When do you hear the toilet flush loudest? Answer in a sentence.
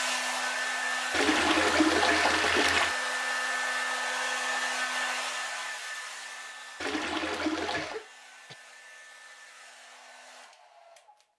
The volume of the toilet flush peaks at 2 seconds.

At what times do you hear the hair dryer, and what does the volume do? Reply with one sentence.
You can hear the hair dryer from 0.0 to 11.3 s, getting quieter.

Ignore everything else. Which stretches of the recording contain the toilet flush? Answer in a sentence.
You can hear the toilet flush from 1.1 to 3.0 s and from 6.8 to 8.0 s.